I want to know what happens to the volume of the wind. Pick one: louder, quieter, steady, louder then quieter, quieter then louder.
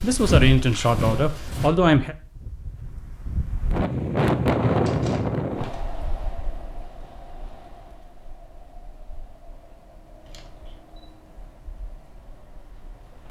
louder then quieter.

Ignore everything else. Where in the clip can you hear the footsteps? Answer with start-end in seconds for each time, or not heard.
0.0-1.7.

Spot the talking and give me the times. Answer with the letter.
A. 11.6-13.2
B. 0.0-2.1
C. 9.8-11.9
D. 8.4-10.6
B.